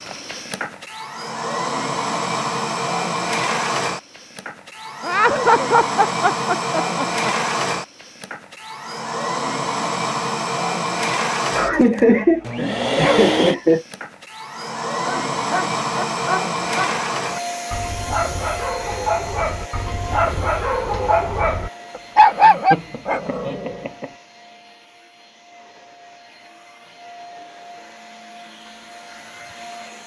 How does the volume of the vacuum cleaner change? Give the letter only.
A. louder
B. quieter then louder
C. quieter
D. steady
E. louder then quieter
C.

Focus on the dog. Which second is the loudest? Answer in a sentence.
The loudest moment of the dog is at 22 seconds.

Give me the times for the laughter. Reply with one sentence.
You can hear the laughter from 5.0 to 7.3 s, from 11.5 to 13.8 s and from 22.2 to 24.1 s.